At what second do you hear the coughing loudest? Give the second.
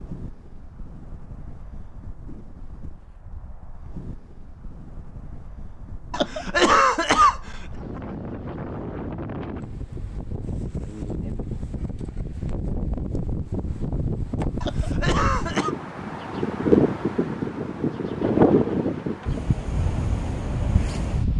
7 s.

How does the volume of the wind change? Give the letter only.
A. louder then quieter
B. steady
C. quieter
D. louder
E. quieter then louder
D.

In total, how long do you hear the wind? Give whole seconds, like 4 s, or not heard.
21 s.